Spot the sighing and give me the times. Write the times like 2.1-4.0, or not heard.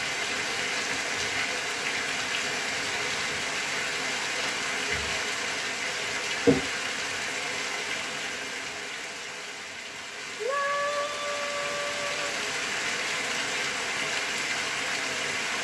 10.4-12.4.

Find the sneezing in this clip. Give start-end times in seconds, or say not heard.
not heard.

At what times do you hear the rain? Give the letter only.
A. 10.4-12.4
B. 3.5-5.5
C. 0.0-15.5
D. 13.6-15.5
C.